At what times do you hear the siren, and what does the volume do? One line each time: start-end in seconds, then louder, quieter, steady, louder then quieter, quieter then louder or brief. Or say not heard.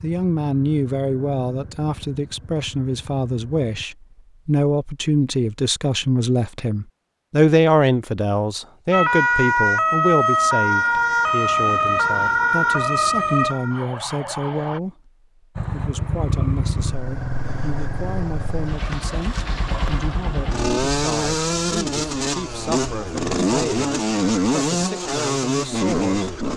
8.9-14.8 quieter.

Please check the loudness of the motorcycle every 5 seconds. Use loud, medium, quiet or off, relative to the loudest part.
quiet, off, off, medium, loud, loud.